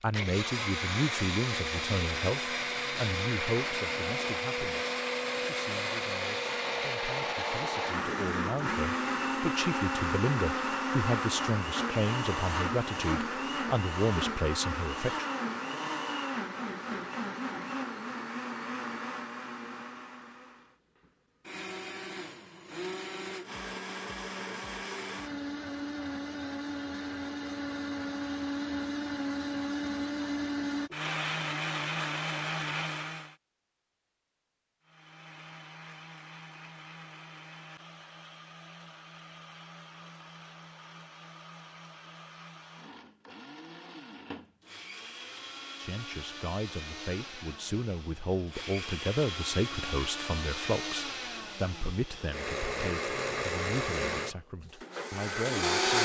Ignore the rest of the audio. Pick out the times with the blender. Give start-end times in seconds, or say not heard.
0.0-33.4, 34.9-56.0.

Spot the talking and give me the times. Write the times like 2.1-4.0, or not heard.
0.0-15.2, 45.8-56.0.